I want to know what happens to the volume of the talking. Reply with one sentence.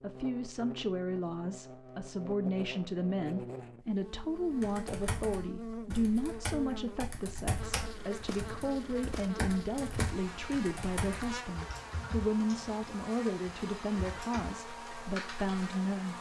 The volume of the talking stays about the same.